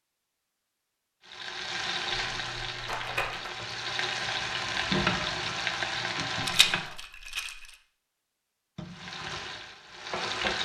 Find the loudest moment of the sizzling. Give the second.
5 s.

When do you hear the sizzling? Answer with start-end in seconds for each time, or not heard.
1.2-7.0, 8.8-10.6.